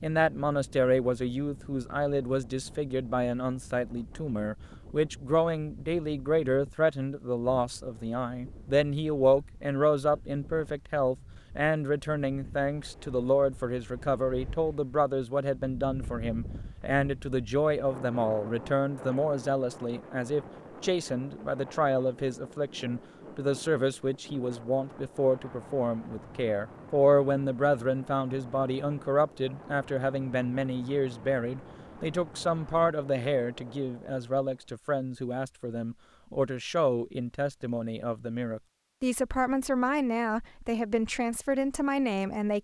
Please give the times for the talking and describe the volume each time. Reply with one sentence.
The talking can be heard from 0.0 to 42.6 s, at a steady volume.